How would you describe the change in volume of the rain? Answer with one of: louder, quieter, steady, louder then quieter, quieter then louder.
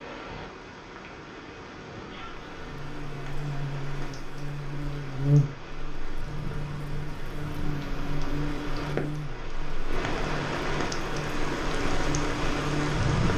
louder.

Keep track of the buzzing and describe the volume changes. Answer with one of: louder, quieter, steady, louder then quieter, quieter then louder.
louder then quieter.